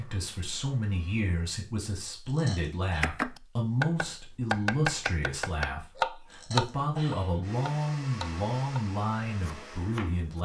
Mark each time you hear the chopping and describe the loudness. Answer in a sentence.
You can hear the chopping from 3.0 to 10.4 s, getting quieter.